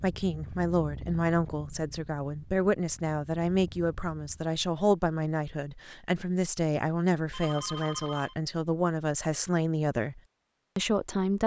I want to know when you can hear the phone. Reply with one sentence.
The phone can be heard from 7.3 to 8.3 s.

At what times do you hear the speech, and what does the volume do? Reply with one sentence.
You can hear the speech from 0.0 to 11.4 s, at a steady volume.